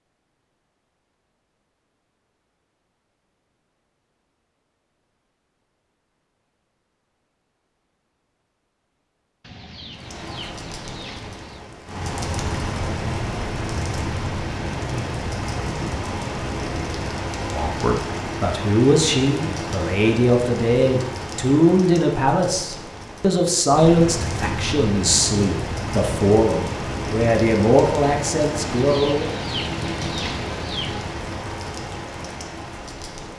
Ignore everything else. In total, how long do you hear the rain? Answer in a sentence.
The rain can be heard for 23 seconds in total.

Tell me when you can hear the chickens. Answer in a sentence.
You can hear the chickens from 9.4 to 11.6 s and from 28.6 to 31.2 s.